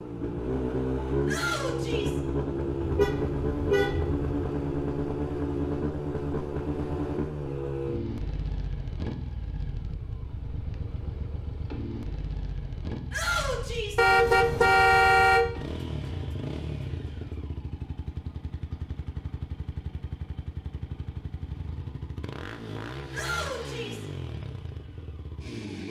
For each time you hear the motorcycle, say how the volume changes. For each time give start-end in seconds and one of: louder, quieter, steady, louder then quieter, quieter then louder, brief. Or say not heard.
0.0-25.8 quieter.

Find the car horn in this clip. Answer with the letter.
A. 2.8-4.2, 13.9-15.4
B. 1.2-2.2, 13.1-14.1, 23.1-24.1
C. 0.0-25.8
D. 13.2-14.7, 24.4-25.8
A.